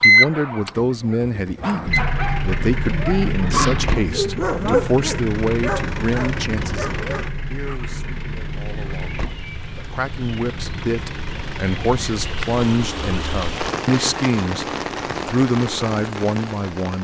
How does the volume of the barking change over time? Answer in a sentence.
The loudness of the barking goes up, then down.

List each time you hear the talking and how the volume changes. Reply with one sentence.
You can hear the talking from 0.0 to 16.9 s, getting quieter then louder.